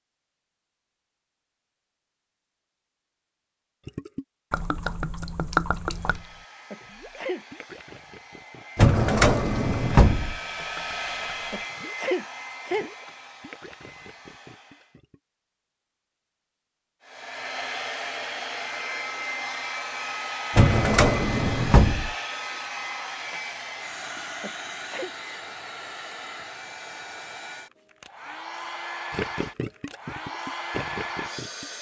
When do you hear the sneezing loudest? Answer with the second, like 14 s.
12 s.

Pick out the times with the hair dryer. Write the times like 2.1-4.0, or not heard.
5.8-15.0, 17.0-31.7.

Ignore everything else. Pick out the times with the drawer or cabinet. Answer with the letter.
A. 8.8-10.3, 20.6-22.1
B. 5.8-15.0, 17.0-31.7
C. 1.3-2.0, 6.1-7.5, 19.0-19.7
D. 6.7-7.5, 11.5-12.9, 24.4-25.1
A.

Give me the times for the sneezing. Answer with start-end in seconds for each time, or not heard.
6.7-7.5, 11.5-12.9, 24.4-25.1.